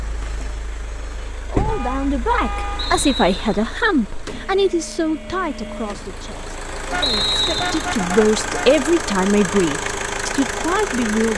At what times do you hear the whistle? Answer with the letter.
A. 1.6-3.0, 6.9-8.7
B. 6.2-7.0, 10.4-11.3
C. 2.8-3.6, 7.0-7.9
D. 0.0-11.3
C.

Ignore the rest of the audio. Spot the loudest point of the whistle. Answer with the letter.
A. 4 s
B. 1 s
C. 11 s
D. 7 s
D.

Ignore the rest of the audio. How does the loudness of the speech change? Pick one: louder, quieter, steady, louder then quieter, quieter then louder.
quieter then louder.